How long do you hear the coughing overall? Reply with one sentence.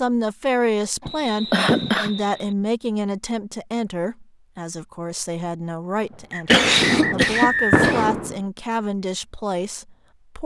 The coughing can be heard for 3 seconds in total.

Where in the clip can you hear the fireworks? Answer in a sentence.
You can hear the fireworks from 6.0 to 8.4 s.